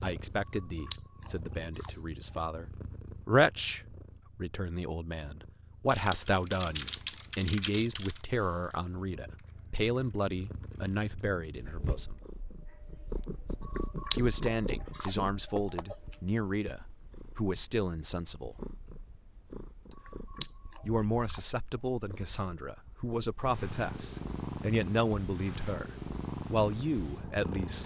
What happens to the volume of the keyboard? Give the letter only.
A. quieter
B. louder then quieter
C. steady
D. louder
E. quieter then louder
A.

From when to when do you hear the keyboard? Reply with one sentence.
You can hear the keyboard from 5.9 to 11.2 s.